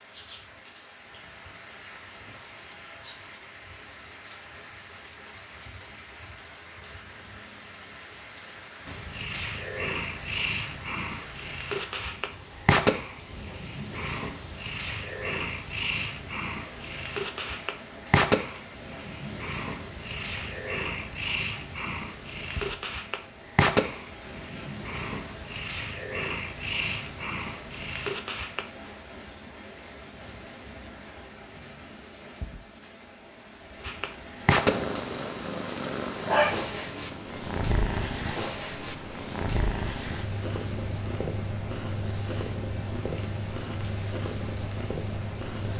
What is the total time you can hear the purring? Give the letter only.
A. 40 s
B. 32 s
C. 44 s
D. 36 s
B.